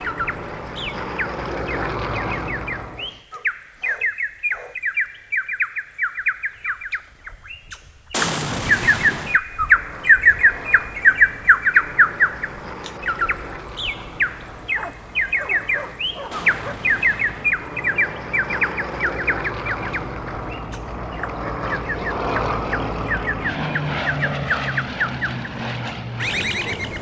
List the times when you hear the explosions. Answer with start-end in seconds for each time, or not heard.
8.1-9.4, 16.3-17.6.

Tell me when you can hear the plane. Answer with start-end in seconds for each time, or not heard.
0.0-3.2, 9.4-26.9.